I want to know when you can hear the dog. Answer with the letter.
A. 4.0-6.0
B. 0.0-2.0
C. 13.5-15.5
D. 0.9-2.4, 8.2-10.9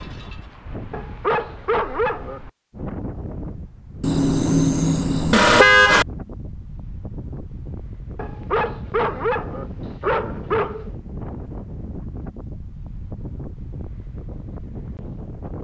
D.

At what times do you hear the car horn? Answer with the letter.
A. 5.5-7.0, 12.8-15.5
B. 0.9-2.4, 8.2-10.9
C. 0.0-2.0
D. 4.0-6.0
D.